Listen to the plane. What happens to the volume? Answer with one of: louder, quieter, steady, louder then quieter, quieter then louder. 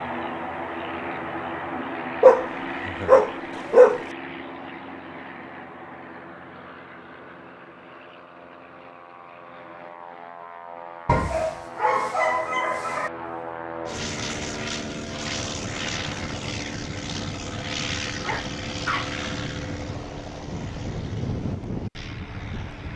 quieter then louder.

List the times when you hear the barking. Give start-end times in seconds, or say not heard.
2.2-4.0, 11.1-13.1, 18.2-19.2.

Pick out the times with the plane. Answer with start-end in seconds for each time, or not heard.
0.0-22.9.